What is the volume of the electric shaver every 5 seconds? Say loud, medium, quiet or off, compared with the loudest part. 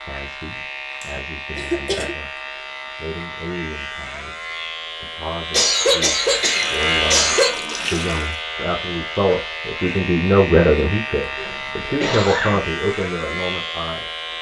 medium, loud, loud.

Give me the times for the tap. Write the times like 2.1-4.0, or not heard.
6.2-8.4.